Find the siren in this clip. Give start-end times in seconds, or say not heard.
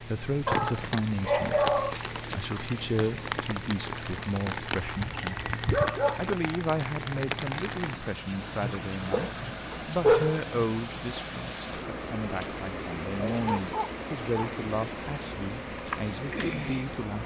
not heard.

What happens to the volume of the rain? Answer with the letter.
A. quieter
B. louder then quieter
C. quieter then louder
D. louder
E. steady
E.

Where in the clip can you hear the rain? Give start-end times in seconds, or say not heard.
0.0-17.2.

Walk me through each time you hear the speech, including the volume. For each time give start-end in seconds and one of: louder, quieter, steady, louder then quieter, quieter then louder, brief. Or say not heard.
0.0-17.2 steady.